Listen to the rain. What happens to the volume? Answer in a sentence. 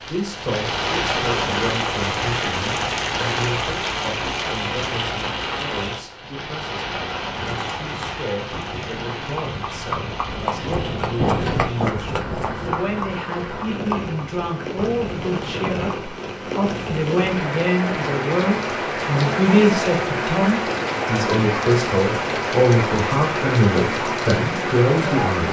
The volume of the rain goes down, then up.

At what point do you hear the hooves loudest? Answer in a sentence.
The volume of the hooves peaks at 11 seconds.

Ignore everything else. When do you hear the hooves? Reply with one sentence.
The hooves can be heard from 7.3 to 16.1 s.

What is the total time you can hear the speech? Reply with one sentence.
The speech can be heard for 25 seconds in total.